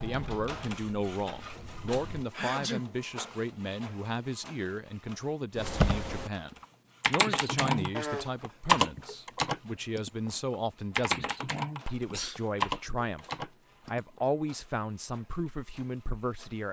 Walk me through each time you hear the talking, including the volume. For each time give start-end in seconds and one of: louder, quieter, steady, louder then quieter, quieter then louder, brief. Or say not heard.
0.0-16.6 steady.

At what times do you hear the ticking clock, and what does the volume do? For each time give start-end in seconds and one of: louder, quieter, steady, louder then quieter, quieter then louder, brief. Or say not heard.
not heard.